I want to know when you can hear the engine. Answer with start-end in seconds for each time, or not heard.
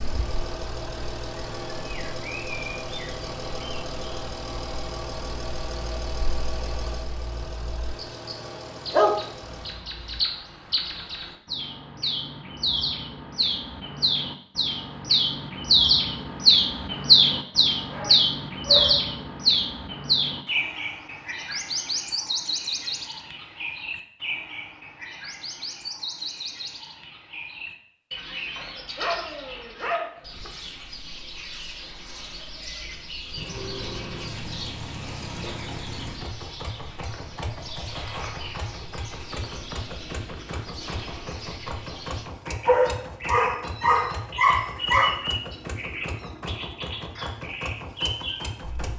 0.0-9.8, 33.3-48.9.